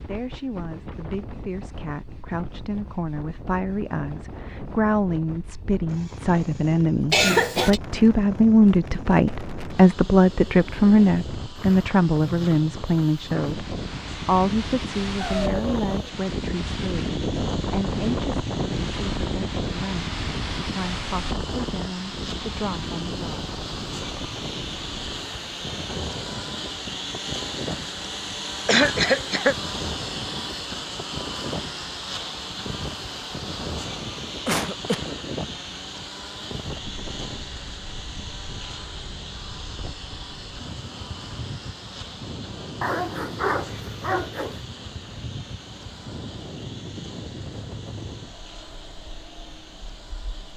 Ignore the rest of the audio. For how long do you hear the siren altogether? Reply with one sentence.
The siren can't be heard in this clip.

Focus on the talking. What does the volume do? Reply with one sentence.
The loudness of the talking goes up, then down.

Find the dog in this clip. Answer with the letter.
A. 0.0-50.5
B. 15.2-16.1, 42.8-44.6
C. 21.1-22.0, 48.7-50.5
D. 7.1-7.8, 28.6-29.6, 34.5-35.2
B.